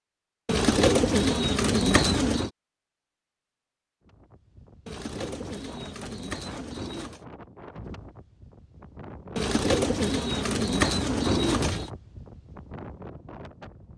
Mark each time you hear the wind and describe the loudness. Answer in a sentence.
You can hear the wind from 4.0 to 13.9 s, getting louder then quieter.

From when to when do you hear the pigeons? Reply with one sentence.
You can hear the pigeons from 0.5 to 2.5 s, from 4.8 to 7.2 s and from 9.3 to 11.9 s.